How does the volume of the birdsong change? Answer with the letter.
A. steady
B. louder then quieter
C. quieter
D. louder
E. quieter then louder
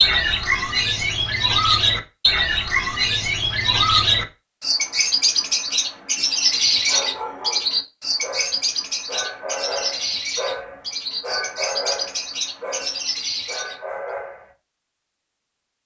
C.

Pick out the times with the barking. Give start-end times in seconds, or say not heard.
6.2-14.5.